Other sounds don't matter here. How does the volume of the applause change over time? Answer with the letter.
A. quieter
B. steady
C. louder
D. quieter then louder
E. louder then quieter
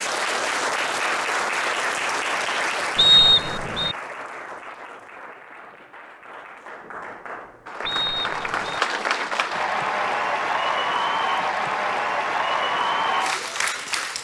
D.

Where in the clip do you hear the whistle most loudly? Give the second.
3 s.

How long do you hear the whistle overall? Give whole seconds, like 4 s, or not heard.
2 s.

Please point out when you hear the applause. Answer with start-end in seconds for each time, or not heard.
0.0-14.1.